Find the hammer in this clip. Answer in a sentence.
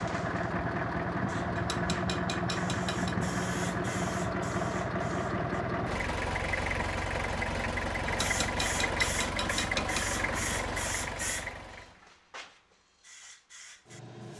The hammer can be heard from 1.6 to 3.1 s and from 8.1 to 10.1 s.